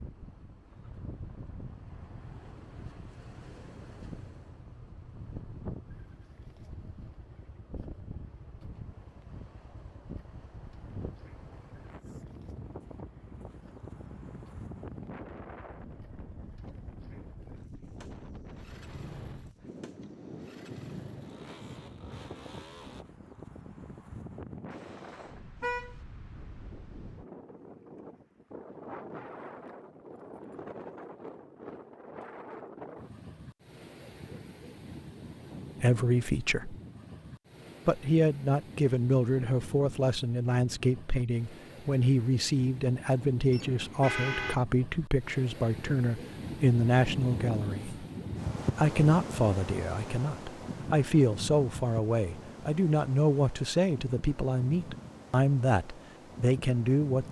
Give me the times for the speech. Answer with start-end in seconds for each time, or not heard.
35.8-36.8, 37.9-48.0, 48.8-57.2.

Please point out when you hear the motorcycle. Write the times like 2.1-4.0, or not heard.
0.2-23.1.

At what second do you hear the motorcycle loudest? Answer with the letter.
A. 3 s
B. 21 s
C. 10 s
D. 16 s
B.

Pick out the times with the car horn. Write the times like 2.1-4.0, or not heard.
24.7-25.9, 43.5-44.6.